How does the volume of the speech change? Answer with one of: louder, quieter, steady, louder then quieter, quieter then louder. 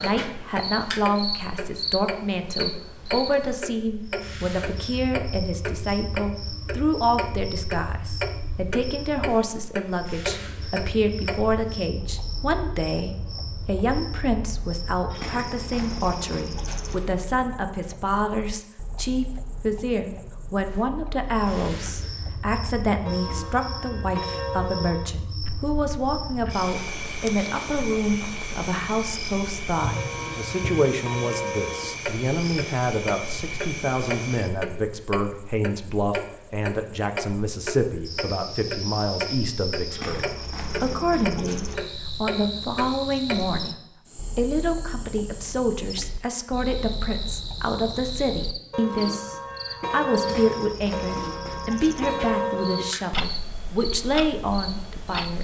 steady.